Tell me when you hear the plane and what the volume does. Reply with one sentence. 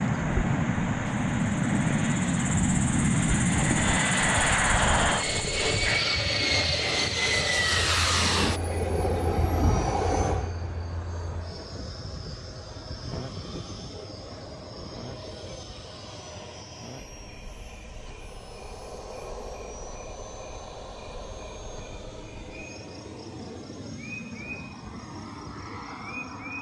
The plane can be heard from 0.0 to 26.5 s, getting quieter.